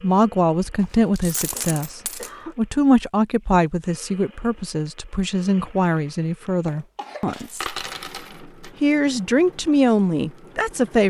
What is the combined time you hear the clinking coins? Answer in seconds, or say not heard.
3 s.